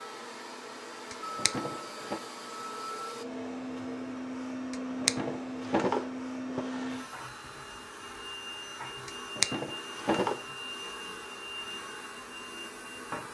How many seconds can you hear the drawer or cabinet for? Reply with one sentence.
You can hear the drawer or cabinet for 5 seconds altogether.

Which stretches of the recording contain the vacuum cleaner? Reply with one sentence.
You can hear the vacuum cleaner from 0.0 to 13.2 s.